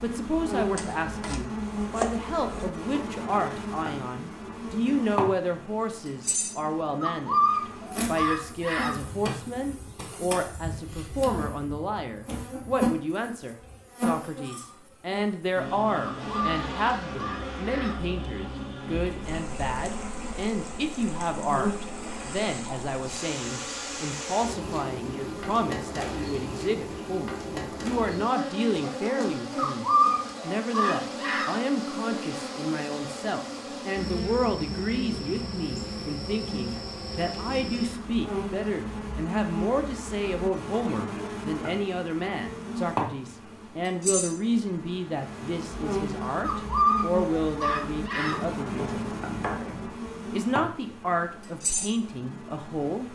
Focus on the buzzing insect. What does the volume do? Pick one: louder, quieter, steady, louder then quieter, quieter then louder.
steady.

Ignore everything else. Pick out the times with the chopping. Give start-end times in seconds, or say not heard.
0.8-2.6, 48.5-50.0.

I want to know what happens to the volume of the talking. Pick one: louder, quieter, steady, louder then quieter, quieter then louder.
steady.